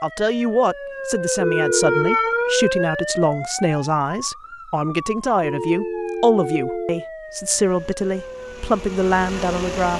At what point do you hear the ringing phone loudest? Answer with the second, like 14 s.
2 s.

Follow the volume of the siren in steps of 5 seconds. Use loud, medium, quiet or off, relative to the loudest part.
loud, medium.